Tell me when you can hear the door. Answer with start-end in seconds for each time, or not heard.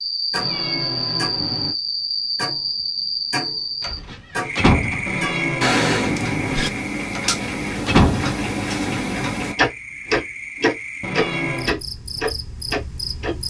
3.8-5.2, 7.2-8.4.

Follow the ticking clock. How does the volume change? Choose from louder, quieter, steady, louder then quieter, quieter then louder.
louder.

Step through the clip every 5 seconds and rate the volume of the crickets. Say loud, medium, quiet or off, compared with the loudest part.
loud, medium, medium.